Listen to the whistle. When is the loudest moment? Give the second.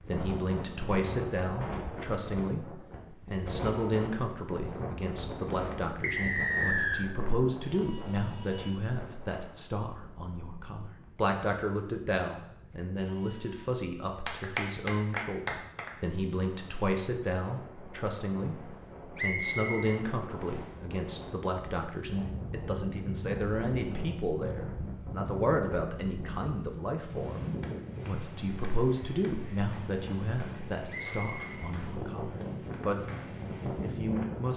7 s.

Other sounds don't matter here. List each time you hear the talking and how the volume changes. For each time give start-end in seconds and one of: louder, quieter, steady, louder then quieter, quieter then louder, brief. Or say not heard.
0.1-33.0 steady
33.8-34.5 brief.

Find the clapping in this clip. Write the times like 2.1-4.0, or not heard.
14.2-15.9, 27.6-33.4.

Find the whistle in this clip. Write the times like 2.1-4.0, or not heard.
6.0-7.0, 19.1-20.6, 30.9-32.4.